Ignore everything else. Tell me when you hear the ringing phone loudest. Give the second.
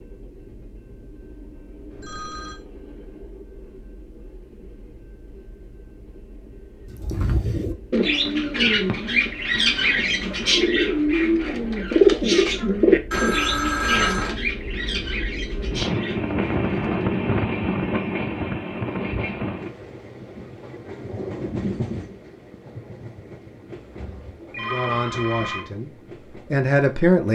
14 s.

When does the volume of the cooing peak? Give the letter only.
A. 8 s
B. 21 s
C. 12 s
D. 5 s
C.